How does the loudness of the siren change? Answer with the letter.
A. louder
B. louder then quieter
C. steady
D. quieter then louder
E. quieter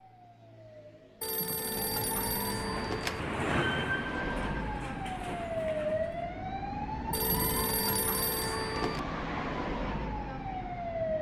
A.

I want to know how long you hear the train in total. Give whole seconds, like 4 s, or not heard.
4 s.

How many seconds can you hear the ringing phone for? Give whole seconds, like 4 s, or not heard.
4 s.